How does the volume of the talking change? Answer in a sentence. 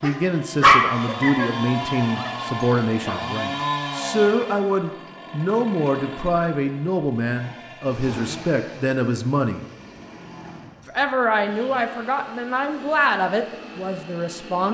The volume of the talking stays about the same.